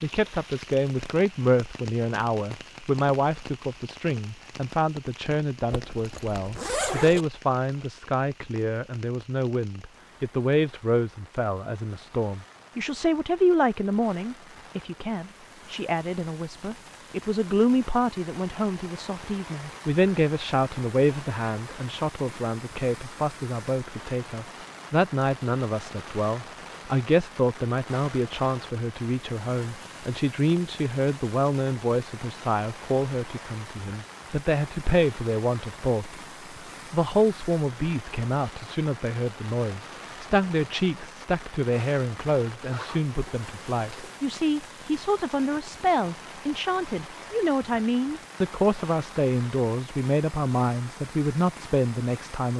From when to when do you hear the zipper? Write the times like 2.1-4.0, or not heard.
5.7-7.2, 42.6-44.3.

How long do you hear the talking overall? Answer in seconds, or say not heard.
52 s.